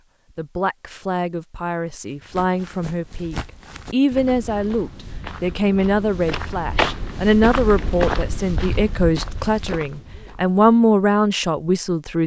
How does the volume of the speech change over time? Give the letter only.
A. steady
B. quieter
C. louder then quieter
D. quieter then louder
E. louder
E.